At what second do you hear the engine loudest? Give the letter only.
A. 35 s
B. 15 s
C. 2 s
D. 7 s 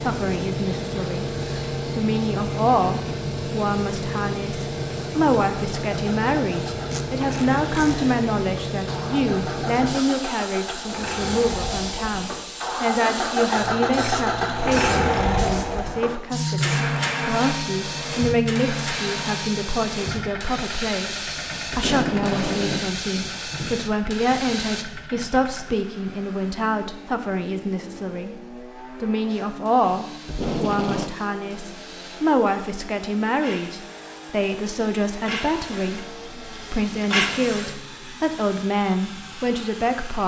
B.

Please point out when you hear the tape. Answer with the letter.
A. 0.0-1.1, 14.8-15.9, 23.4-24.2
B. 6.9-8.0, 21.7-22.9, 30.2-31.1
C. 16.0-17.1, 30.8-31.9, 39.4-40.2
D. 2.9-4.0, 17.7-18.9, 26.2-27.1
B.